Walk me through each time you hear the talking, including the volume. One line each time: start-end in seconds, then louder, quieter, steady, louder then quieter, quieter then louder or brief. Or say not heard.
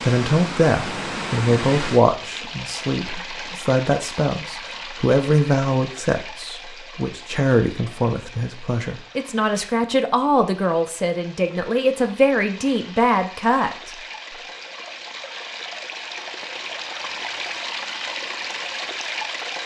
0.0-13.9 steady.